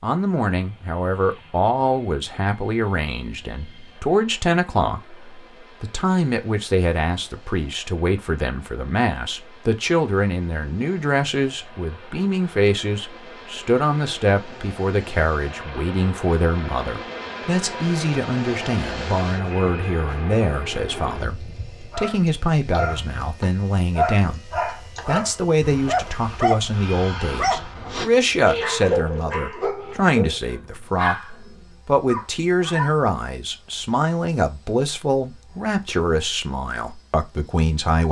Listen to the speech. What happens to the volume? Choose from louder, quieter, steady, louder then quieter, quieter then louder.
steady.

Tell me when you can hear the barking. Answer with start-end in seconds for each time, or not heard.
21.9-33.0.